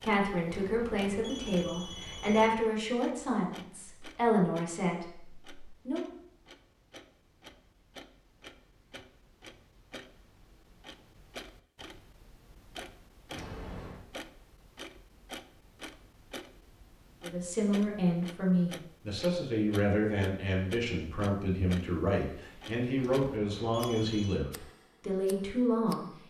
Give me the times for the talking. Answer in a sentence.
The talking can be heard from 0.0 to 6.0 s and from 17.2 to 26.1 s.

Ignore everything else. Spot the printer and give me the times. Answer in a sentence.
The printer can't be heard in this clip.